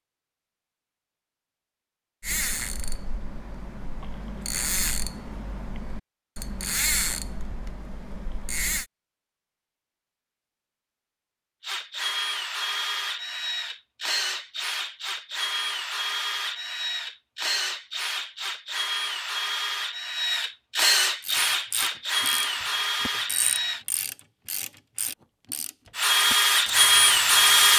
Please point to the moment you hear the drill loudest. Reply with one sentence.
The loudest moment of the drill is at 27 seconds.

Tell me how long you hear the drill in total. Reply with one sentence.
You can hear the drill for 14 seconds altogether.